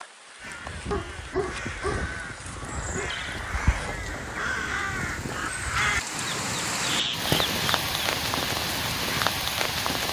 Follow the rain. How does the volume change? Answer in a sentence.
The loudness of the rain goes up.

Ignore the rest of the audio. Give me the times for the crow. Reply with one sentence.
You can hear the crow from 0.4 to 9.2 s.